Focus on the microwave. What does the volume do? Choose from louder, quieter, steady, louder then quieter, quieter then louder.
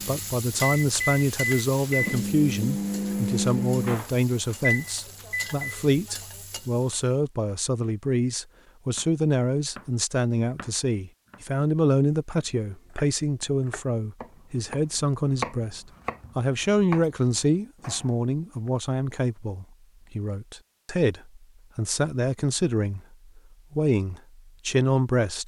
steady.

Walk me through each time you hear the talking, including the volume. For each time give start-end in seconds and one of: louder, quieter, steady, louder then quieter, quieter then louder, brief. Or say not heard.
0.1-25.4 steady.